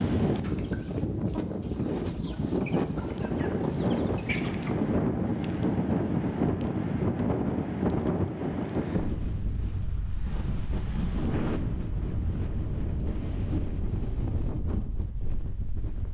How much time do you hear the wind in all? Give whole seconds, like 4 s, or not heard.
16 s.